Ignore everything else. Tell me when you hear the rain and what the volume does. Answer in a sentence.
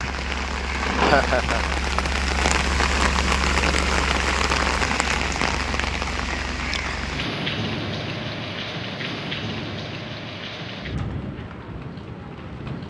You can hear the rain from 0.0 to 12.8 s, getting quieter.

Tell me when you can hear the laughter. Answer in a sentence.
You can hear the laughter from 0.9 to 1.8 s.